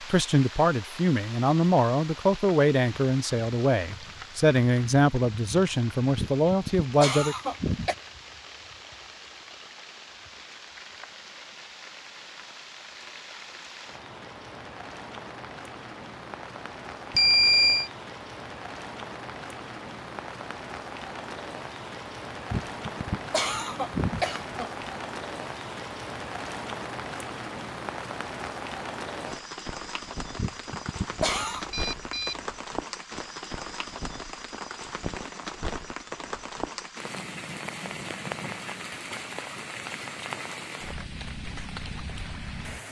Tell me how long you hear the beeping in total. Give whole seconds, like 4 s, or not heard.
2 s.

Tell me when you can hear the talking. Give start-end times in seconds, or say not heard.
0.0-7.3.